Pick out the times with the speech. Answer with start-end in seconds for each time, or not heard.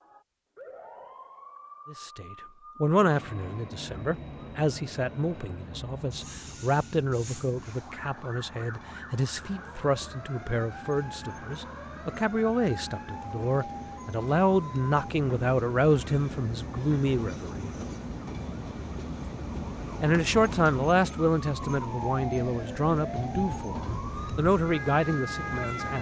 1.9-17.7, 20.0-25.9.